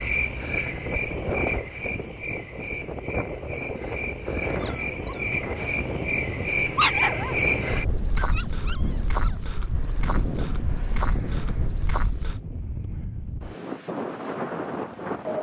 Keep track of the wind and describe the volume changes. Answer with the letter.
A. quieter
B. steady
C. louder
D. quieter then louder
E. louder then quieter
B.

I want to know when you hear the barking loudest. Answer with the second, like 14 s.
7 s.